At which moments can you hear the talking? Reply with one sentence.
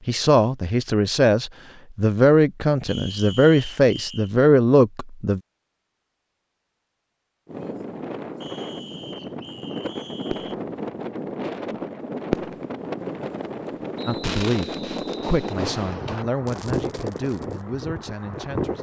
The talking can be heard from 0.1 to 5.4 s and from 14.1 to 18.7 s.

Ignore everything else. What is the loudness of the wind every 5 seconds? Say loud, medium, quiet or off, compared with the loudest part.
off, loud, loud, loud.